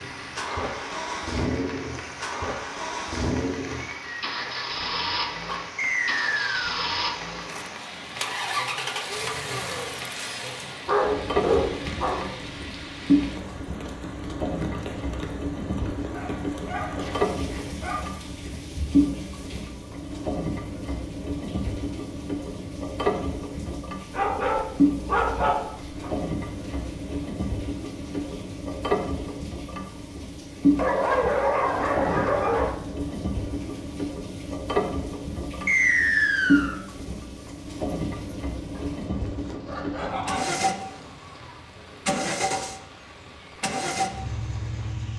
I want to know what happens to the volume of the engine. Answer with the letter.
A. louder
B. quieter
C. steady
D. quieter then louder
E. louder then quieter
C.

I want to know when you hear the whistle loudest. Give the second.
36 s.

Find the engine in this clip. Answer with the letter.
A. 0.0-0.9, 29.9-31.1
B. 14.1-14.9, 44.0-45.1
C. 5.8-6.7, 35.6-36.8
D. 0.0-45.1
D.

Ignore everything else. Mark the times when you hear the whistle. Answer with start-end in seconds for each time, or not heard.
5.8-6.7, 35.6-36.8.